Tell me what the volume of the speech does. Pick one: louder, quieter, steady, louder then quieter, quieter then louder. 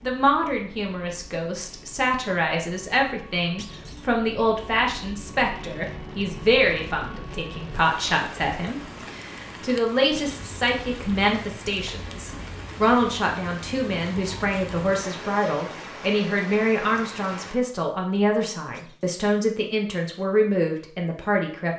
steady.